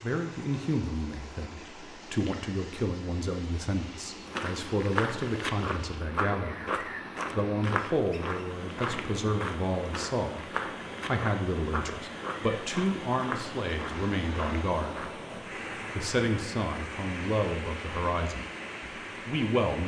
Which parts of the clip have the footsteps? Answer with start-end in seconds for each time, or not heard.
4.2-15.2.